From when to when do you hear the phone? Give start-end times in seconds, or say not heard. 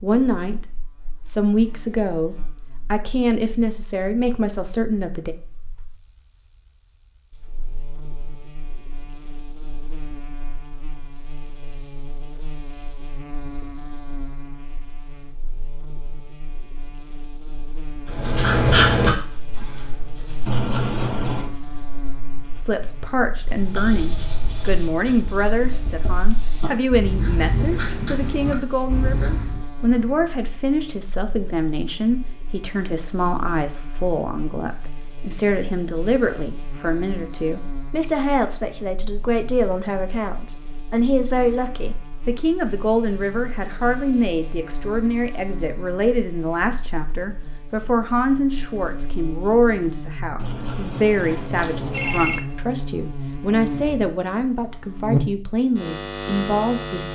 20.4-21.5, 50.4-52.4.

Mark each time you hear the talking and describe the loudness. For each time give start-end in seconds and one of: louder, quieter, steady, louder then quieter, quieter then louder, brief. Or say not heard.
0.0-0.7 brief
1.2-5.3 steady
22.6-57.1 steady.